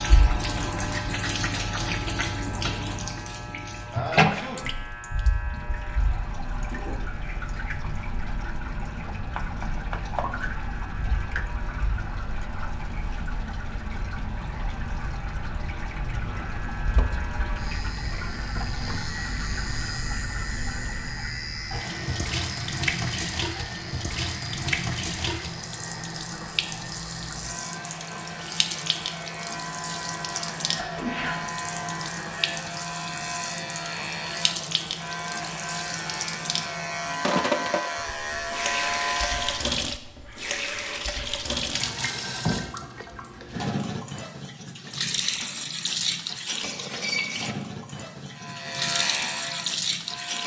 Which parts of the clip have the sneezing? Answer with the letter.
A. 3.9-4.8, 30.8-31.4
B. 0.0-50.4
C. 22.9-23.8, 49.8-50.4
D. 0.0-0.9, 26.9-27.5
A.